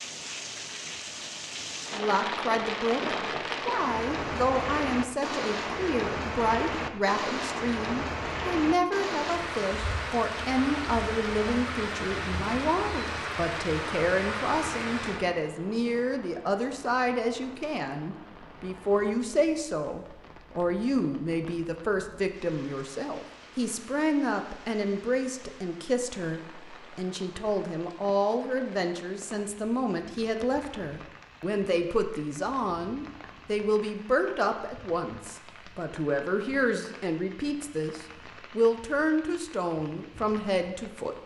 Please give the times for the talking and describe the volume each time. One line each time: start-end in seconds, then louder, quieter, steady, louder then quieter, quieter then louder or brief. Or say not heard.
1.9-41.2 steady.